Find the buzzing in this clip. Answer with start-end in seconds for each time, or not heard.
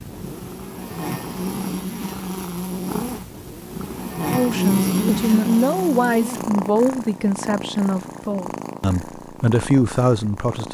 0.0-6.6.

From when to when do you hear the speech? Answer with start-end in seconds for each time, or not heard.
4.3-10.6.